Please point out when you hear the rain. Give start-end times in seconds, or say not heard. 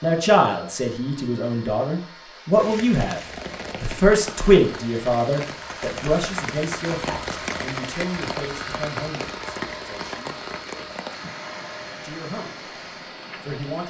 2.5-13.8.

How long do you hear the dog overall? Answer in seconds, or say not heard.
not heard.